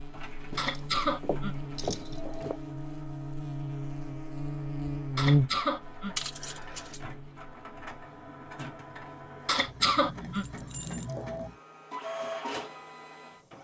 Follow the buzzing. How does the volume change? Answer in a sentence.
The volume of the buzzing goes up, then down.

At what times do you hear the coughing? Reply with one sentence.
You can hear the coughing from 0.6 to 2.5 s, from 5.2 to 6.2 s and from 9.4 to 11.5 s.